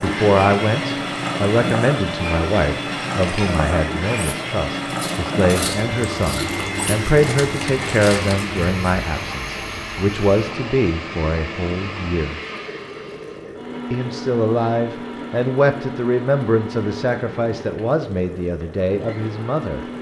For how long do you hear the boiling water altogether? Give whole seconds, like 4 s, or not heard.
20 s.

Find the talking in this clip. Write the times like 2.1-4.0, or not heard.
0.0-12.4, 13.9-19.9.